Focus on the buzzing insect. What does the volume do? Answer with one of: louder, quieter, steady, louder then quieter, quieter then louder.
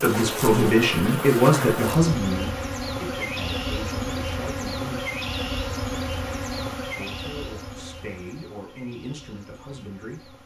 quieter.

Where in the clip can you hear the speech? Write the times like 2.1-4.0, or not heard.
0.0-5.0, 6.9-10.4.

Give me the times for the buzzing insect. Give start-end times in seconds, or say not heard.
0.0-10.4.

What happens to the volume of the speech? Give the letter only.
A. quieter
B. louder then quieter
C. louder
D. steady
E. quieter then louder
A.